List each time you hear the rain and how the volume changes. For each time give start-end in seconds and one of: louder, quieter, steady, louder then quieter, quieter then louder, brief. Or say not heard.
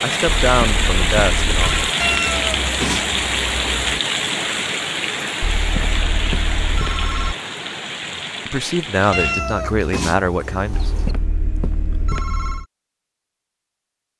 0.0-9.4 quieter.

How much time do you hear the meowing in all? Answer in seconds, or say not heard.
4 s.